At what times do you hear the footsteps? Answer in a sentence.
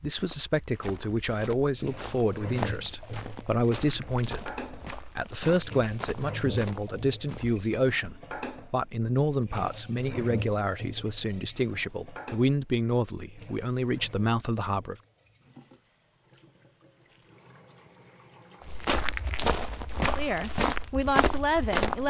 The footsteps can be heard from 0.0 to 7.7 s and from 18.6 to 22.0 s.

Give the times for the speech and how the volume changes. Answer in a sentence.
The speech can be heard from 0.0 to 14.9 s, at a steady volume; and briefly from 20.1 to 22.0 s.